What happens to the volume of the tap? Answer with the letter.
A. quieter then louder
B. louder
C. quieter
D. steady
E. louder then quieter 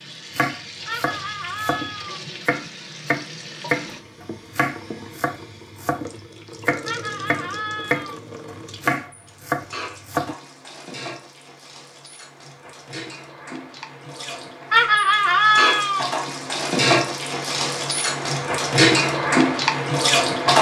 B.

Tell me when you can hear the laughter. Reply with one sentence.
You can hear the laughter from 0.8 to 2.2 s, from 6.8 to 8.2 s and from 14.7 to 16.1 s.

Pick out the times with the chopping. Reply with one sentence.
You can hear the chopping from 0.3 to 10.3 s.